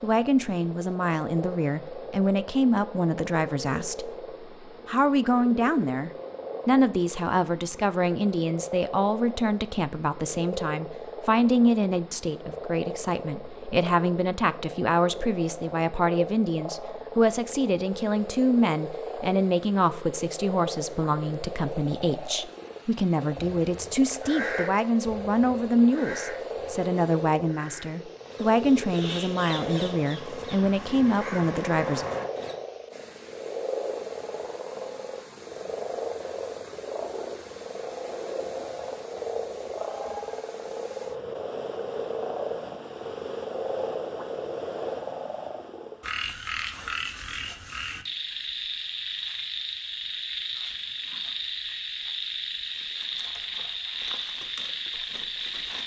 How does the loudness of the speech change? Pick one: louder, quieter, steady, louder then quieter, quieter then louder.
steady.